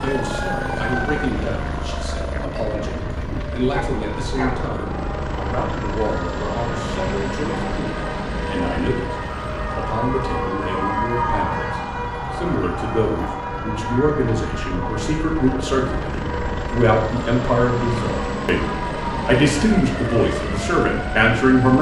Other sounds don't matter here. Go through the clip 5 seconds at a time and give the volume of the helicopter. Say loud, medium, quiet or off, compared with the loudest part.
loud, loud, medium, loud, loud.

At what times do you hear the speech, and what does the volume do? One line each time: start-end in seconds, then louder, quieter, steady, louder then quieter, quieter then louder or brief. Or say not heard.
0.0-21.7 louder.